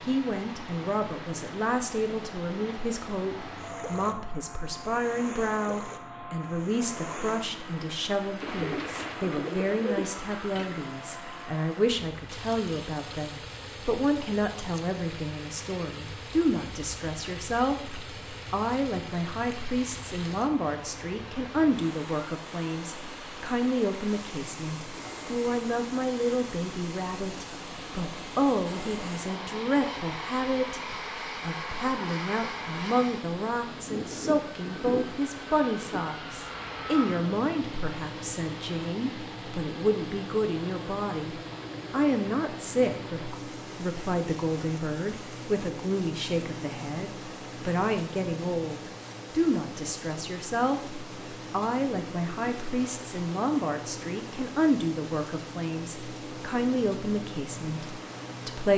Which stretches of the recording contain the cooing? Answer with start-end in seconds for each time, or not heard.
8.4-10.8.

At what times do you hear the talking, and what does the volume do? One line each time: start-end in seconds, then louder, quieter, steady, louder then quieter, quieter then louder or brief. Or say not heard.
0.0-58.7 steady.